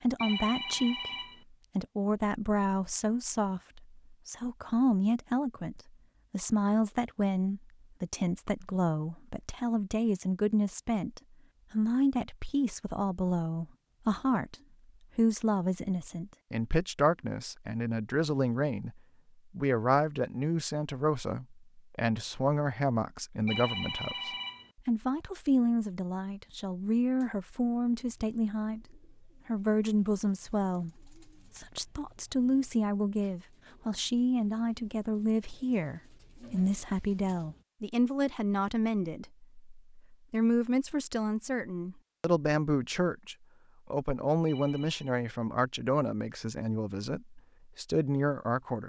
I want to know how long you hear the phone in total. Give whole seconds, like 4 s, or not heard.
3 s.